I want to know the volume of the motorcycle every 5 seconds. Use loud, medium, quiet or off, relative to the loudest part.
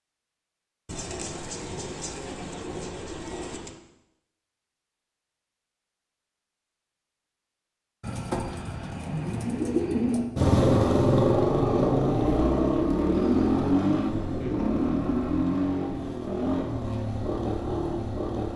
off, off, loud, medium.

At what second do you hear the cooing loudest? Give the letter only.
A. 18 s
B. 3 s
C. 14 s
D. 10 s
D.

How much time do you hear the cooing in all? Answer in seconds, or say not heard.
7 s.